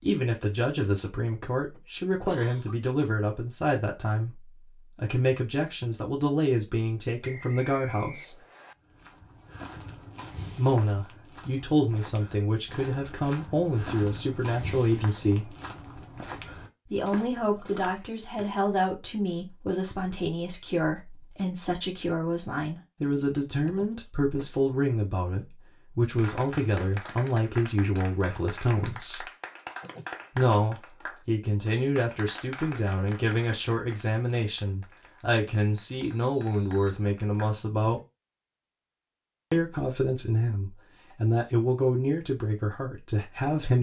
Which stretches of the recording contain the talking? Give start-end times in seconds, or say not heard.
0.0-8.4, 10.6-15.6, 16.9-29.2, 30.4-38.0, 39.5-43.7.